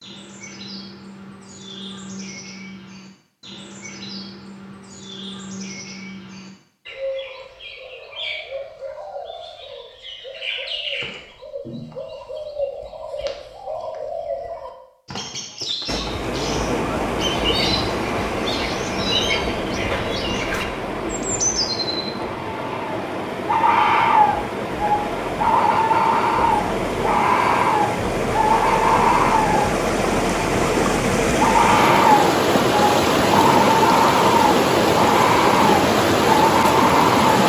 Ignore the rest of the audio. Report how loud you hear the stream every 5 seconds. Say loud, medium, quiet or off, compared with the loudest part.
off, off, off, medium, medium, medium, loud, loud.